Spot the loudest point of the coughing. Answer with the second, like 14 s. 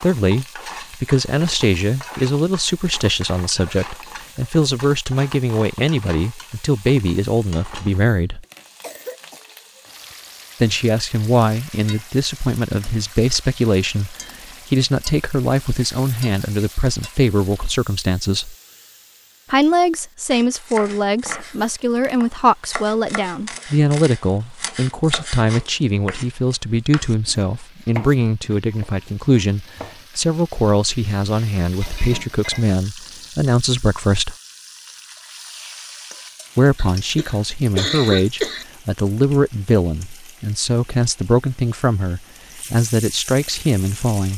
38 s.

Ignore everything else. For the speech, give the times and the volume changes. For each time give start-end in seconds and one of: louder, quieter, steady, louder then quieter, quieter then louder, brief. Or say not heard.
0.0-8.4 steady
10.6-18.6 steady
19.5-34.4 steady
36.5-44.3 steady.